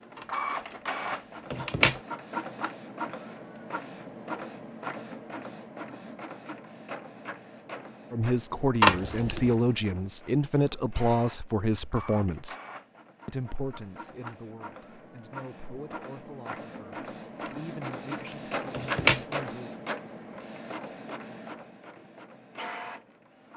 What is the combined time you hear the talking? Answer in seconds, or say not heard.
11 s.